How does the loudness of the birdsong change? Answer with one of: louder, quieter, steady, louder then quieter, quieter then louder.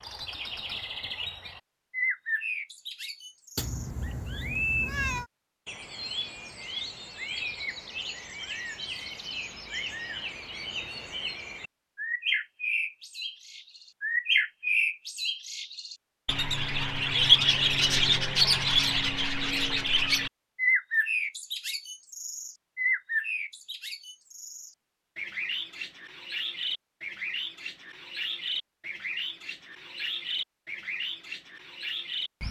louder then quieter.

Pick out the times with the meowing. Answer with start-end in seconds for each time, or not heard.
3.5-5.2.